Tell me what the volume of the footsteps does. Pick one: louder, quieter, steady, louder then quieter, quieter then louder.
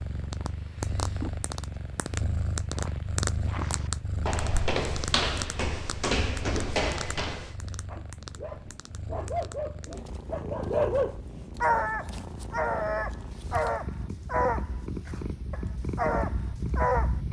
louder.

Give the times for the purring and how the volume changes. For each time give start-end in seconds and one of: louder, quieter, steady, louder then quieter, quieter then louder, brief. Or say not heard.
0.0-17.2 quieter then louder.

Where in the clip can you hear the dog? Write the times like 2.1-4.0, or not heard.
7.9-17.1.